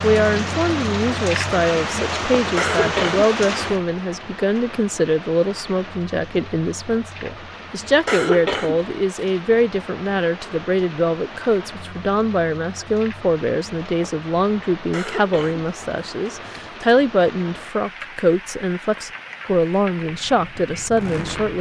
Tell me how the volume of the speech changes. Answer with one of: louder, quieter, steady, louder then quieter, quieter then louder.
steady.